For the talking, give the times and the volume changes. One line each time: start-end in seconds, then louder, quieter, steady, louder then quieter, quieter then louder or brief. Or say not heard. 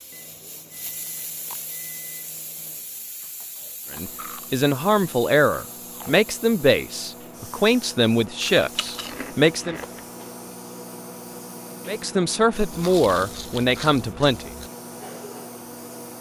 3.9-9.8 steady
11.8-14.5 brief.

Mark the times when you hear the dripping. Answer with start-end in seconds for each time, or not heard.
not heard.